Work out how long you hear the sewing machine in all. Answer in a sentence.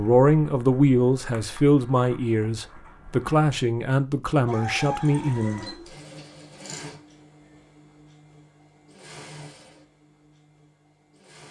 The sewing machine can be heard for 7 seconds in total.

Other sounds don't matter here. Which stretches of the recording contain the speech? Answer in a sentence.
The speech can be heard from 0.0 to 5.7 s.